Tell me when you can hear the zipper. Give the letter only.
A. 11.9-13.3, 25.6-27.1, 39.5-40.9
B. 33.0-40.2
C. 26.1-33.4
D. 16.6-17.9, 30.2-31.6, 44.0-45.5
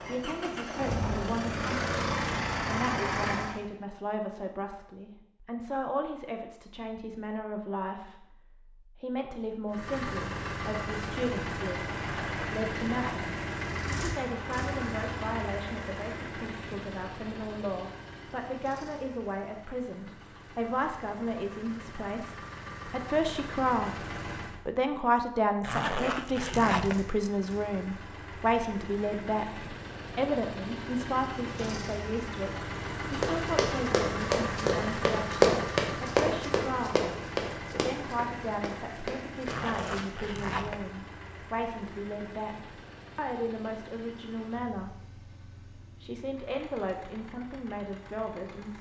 A.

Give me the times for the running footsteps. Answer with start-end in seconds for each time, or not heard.
33.0-40.2.